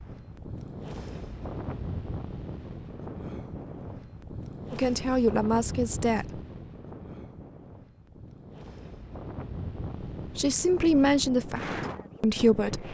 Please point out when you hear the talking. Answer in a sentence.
The talking can be heard from 4.7 to 6.4 s and from 10.3 to 12.8 s.